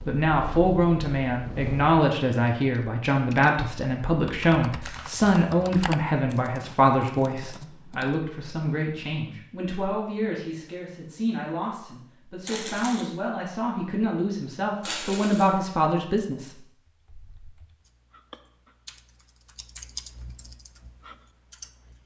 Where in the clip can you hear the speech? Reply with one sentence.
The speech can be heard from 0.0 to 16.6 s.